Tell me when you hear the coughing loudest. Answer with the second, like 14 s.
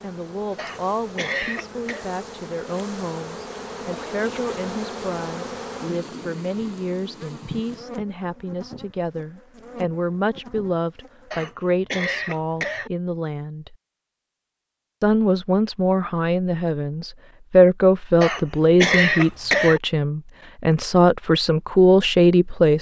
19 s.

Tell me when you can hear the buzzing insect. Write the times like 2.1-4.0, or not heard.
0.0-11.6.